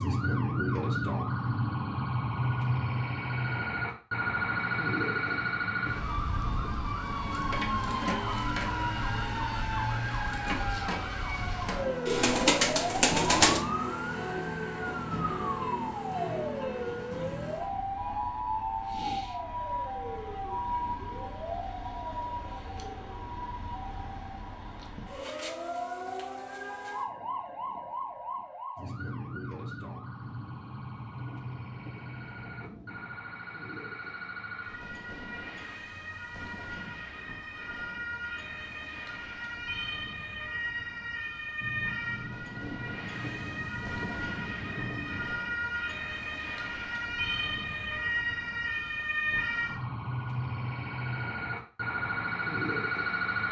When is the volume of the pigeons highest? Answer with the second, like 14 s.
13 s.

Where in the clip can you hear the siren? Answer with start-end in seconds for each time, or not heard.
0.0-53.4.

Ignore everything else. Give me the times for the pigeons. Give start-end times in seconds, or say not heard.
12.1-13.7.